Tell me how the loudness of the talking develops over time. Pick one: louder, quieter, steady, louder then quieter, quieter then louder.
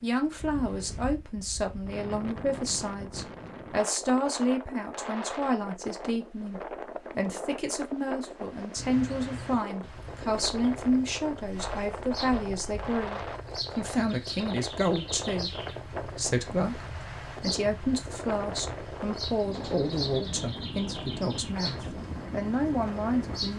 steady.